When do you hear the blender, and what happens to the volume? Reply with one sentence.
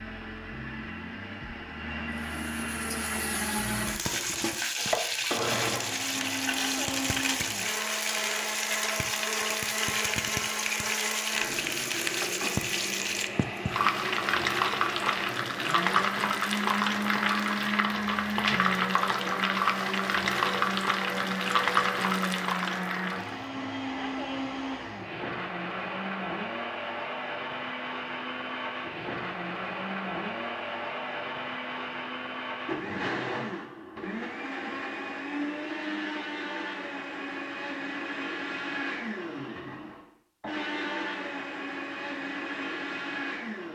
The blender can be heard from 0.0 to 43.6 s, at a steady volume.